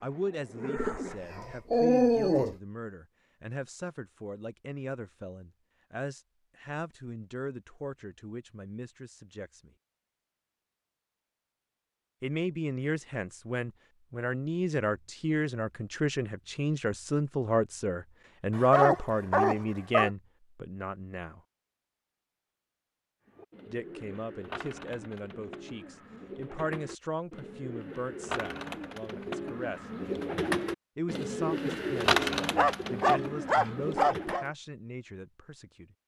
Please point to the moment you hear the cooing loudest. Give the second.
32 s.